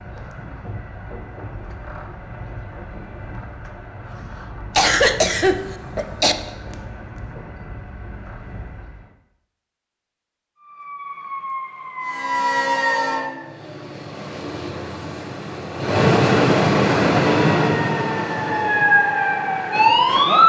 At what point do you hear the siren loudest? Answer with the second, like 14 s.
20 s.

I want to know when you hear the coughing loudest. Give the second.
5 s.